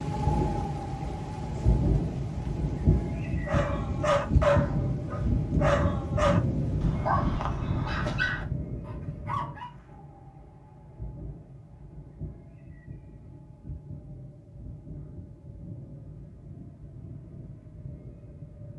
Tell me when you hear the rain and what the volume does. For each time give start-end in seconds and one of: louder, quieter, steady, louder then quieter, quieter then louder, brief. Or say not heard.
0.0-18.7 quieter.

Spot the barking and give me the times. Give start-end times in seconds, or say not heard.
3.5-9.7.